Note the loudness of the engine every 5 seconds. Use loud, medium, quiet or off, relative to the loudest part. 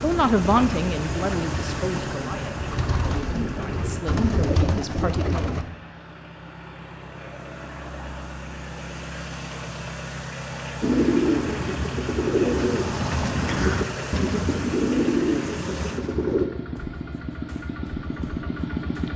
loud, medium, loud, loud.